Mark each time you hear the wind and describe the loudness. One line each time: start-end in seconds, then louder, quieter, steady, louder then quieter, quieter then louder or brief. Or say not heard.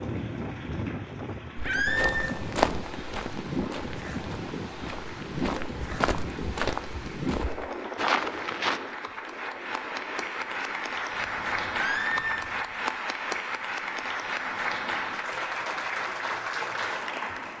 0.0-12.9 quieter.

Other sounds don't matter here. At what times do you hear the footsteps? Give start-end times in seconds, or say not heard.
1.8-8.8.